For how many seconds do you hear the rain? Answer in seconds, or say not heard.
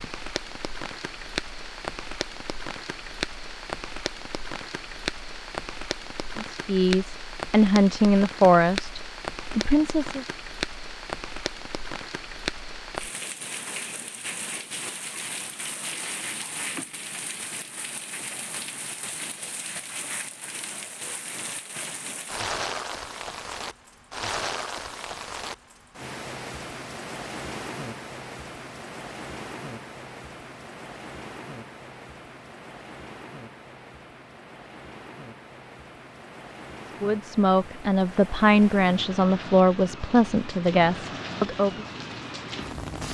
43 s.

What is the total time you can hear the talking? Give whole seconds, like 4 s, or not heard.
9 s.